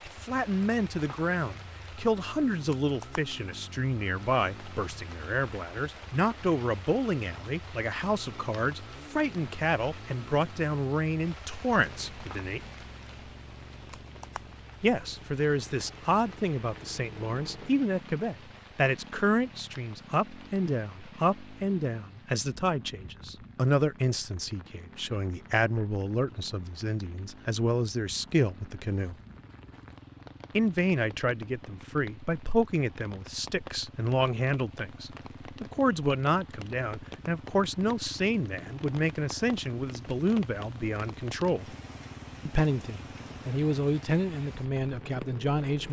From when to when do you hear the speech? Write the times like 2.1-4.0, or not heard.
0.1-12.7, 14.8-29.1, 30.6-41.8, 42.5-45.8.